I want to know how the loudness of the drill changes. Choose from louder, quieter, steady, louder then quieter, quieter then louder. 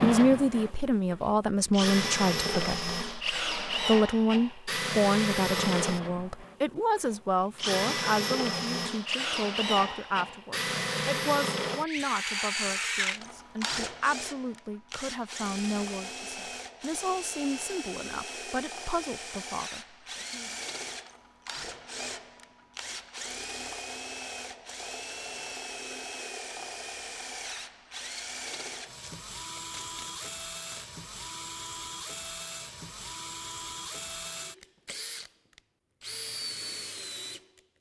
quieter.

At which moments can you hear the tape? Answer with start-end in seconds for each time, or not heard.
28.9-30.9.